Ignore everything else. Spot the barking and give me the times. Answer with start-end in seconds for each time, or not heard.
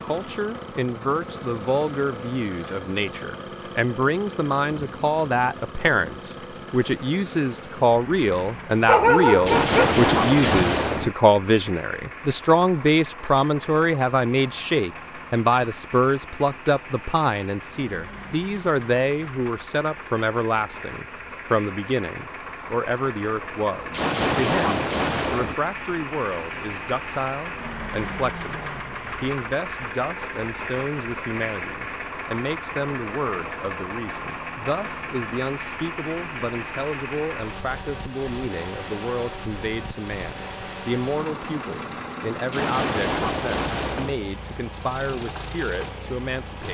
8.8-10.6.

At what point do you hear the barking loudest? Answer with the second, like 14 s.
9 s.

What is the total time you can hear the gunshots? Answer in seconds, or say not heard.
5 s.